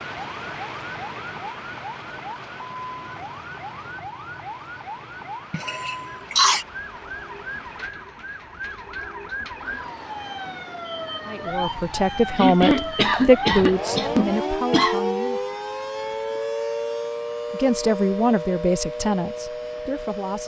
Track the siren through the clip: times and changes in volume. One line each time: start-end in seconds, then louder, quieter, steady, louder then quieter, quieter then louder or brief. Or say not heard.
0.0-20.4 louder.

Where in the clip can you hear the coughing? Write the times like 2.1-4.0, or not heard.
5.5-6.7, 12.3-14.9.